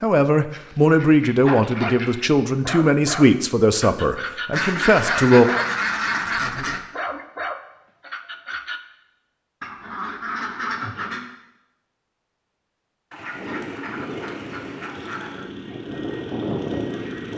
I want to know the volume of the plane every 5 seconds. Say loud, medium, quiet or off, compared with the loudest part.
off, off, medium, loud.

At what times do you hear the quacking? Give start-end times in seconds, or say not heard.
0.5-2.2, 4.5-6.8, 9.6-11.2, 13.1-15.4.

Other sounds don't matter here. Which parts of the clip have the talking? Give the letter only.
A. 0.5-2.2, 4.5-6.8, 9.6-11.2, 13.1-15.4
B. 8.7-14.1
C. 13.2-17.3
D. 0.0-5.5
D.